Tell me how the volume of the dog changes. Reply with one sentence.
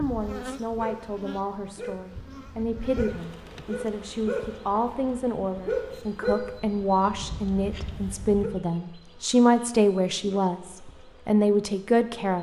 The loudness of the dog goes up, then down.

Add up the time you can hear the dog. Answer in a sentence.
The dog can be heard for 8 seconds in total.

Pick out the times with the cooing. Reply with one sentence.
You can't hear the cooing here.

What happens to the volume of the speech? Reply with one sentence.
The loudness of the speech goes up.